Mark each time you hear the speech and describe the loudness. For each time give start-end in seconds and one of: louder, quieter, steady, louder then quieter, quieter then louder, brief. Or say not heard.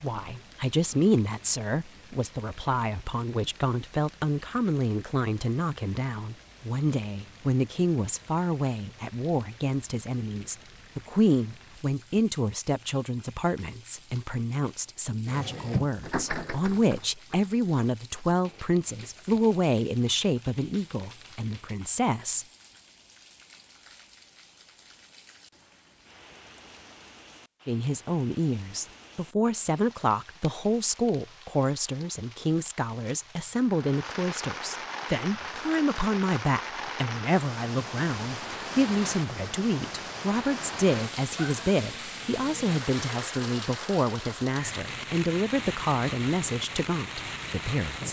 0.0-22.4 steady
27.6-48.0 steady.